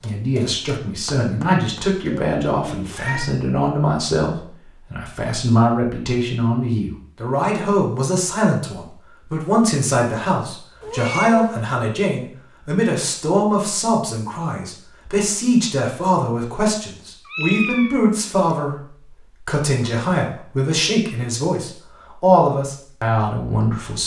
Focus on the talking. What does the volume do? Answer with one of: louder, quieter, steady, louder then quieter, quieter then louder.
steady.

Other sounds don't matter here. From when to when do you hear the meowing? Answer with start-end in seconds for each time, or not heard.
2.0-3.4, 10.8-11.7, 17.2-18.6.